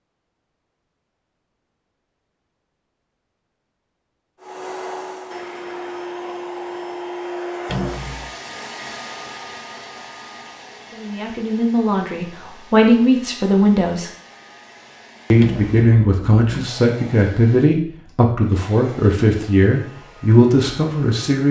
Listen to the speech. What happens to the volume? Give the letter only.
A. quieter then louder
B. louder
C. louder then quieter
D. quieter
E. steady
E.